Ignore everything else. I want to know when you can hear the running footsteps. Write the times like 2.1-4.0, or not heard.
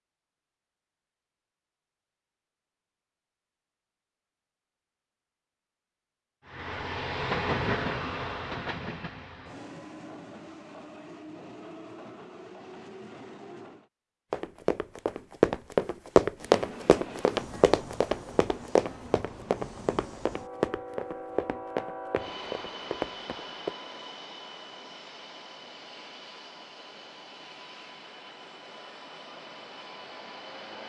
14.3-23.8.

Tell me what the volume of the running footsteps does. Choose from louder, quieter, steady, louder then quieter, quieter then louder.
quieter.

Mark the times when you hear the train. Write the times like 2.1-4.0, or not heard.
6.4-13.9, 16.4-30.8.